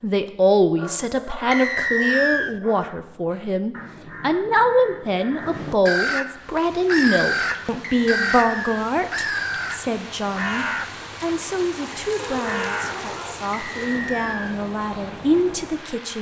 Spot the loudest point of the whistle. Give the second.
2 s.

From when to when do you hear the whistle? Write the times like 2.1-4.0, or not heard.
1.5-2.5, 7.8-8.8, 13.5-14.6.